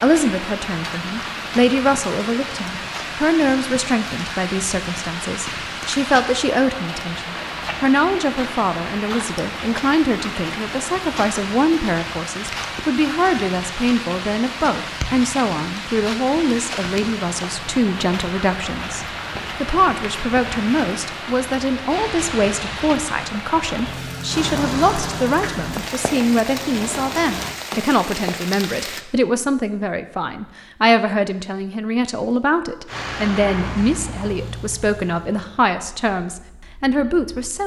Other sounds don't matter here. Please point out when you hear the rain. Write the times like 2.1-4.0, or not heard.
0.0-29.1.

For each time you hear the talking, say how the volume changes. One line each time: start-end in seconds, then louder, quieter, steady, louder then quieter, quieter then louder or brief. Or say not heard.
0.0-37.6 steady.